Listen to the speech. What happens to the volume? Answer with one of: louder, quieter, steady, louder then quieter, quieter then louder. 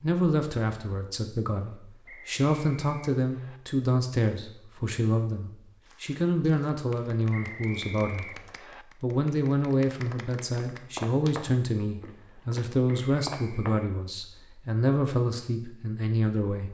steady.